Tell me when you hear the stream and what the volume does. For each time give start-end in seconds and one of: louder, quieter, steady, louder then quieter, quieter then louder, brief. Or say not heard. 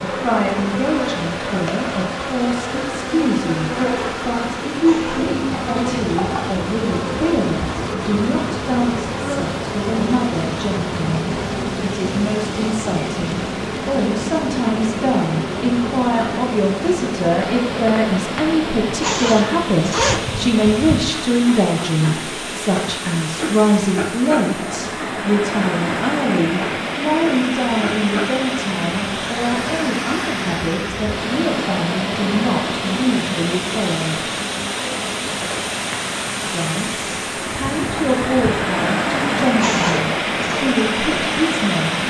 0.0-42.0 louder.